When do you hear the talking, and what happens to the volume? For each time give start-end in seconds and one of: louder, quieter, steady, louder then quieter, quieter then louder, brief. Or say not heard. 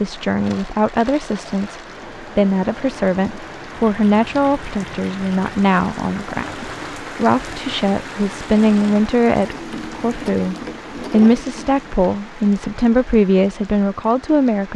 0.0-14.7 steady.